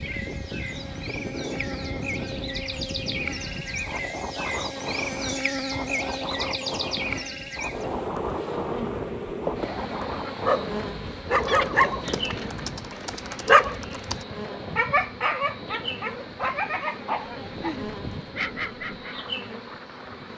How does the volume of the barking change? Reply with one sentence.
The volume of the barking goes down.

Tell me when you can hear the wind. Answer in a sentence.
The wind can be heard from 0.0 to 20.3 s.